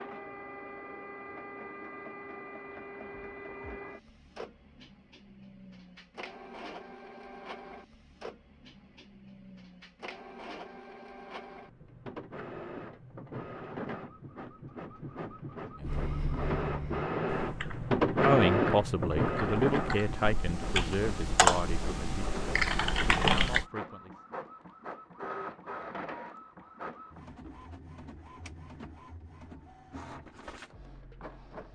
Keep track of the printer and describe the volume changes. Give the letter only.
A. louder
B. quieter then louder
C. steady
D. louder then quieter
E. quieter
D.